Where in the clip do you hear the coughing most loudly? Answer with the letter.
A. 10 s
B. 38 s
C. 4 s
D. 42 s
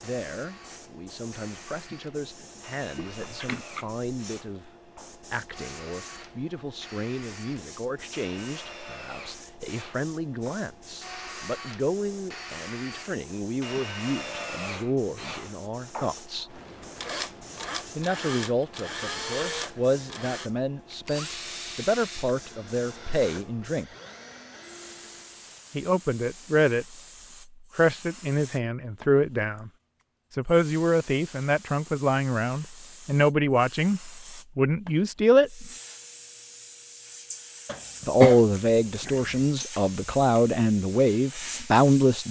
B.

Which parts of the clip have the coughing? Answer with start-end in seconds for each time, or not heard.
3.0-4.0, 37.6-39.5.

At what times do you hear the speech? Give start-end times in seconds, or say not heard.
0.0-16.5, 17.9-23.9, 25.8-26.9, 27.8-29.7, 30.3-35.7, 38.0-42.2.